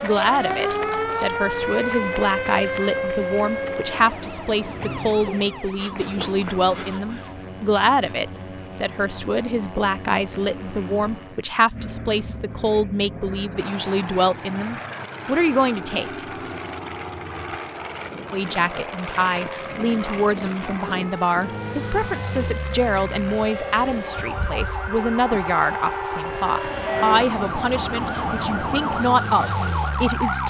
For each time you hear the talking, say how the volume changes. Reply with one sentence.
The talking can be heard from 0.0 to 16.2 s, at a steady volume; and from 18.3 to 30.4 s, at a steady volume.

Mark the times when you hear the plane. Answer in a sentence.
You can hear the plane from 0.0 to 30.4 s.